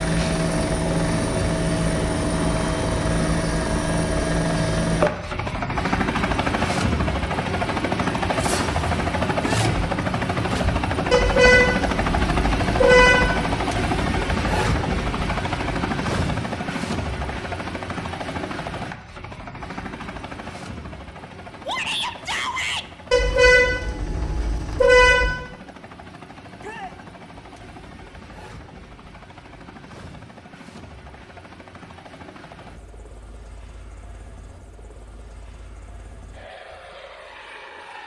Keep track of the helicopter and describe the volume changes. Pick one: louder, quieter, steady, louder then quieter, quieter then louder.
quieter.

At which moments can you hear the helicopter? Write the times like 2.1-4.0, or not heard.
0.0-38.0.